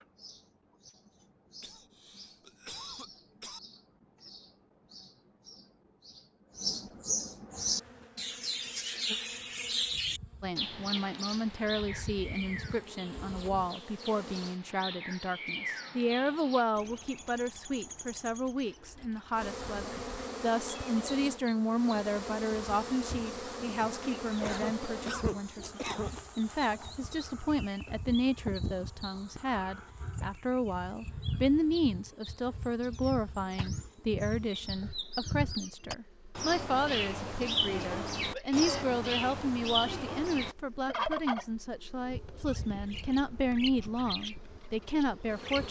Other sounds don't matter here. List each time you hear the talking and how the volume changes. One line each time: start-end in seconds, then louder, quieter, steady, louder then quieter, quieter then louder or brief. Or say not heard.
10.4-45.6 steady.